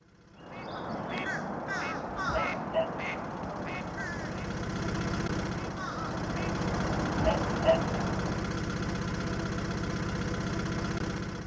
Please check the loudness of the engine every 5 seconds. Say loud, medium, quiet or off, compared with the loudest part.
medium, loud, loud.